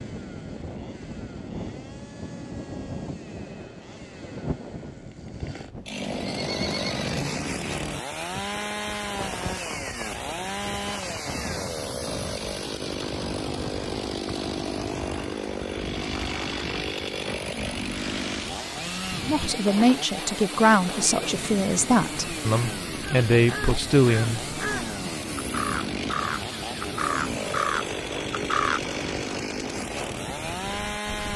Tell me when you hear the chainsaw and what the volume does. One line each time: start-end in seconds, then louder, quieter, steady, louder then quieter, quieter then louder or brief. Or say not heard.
0.0-31.3 louder.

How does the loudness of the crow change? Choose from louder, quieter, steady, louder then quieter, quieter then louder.
louder.